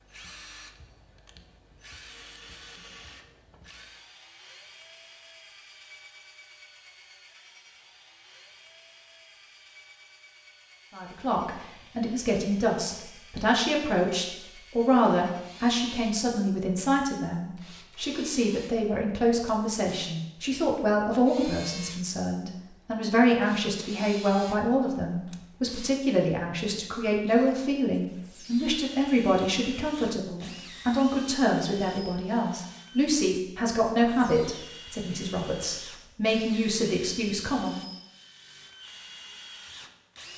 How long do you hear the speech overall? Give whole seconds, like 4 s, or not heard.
27 s.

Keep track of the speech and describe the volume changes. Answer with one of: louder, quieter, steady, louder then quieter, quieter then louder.
steady.